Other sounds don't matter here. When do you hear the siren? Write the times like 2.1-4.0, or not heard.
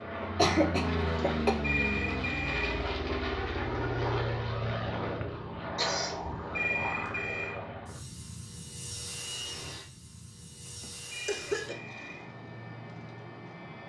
not heard.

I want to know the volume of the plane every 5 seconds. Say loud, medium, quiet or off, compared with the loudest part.
loud, medium, quiet.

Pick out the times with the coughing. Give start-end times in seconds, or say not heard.
0.2-1.5, 5.2-6.2, 10.8-11.8.